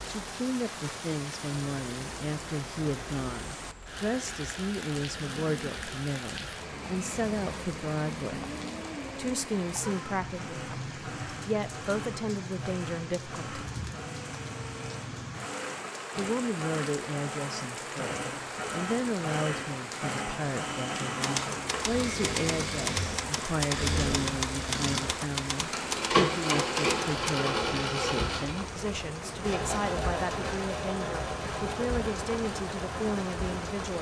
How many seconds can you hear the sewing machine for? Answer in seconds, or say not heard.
29 s.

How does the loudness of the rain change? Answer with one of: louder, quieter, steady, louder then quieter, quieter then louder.
steady.